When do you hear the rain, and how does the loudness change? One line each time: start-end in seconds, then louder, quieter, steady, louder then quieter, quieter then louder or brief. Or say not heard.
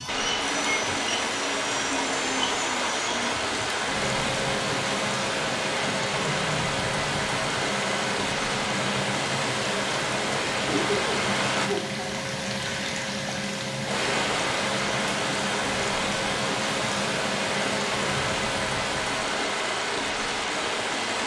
0.1-21.2 steady.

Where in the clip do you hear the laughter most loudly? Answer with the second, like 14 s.
11 s.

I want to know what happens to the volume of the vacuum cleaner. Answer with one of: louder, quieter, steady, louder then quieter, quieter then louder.
steady.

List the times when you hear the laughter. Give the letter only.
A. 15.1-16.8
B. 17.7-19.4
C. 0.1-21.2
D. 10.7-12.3
D.